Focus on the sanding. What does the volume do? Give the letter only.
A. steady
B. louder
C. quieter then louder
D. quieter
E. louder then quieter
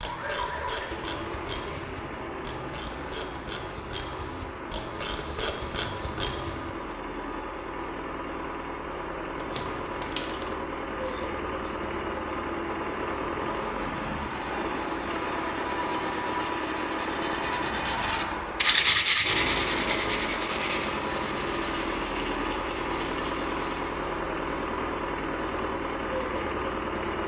E.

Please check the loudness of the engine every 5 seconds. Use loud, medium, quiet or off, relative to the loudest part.
medium, medium, loud, loud, loud, loud.